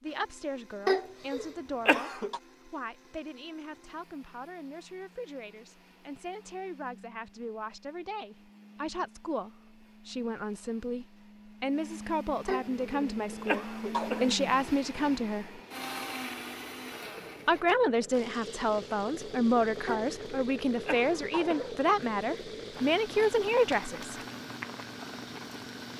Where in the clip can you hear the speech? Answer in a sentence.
The speech can be heard from 0.0 to 15.6 s and from 17.4 to 24.2 s.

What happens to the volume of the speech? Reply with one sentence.
The volume of the speech goes up.